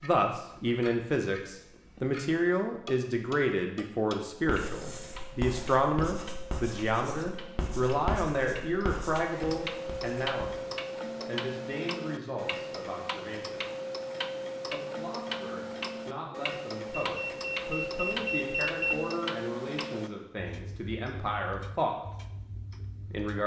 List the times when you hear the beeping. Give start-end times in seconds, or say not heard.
17.0-18.9.